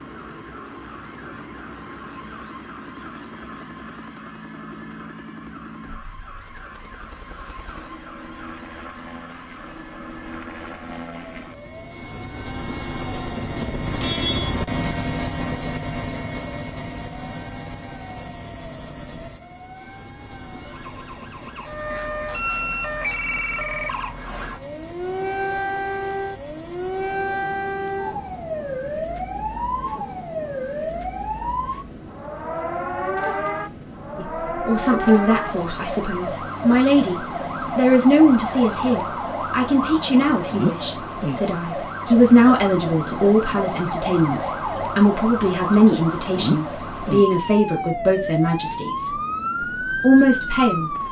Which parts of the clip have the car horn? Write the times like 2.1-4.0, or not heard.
13.6-14.6.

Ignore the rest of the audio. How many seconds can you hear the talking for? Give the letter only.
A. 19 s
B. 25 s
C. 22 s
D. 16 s
D.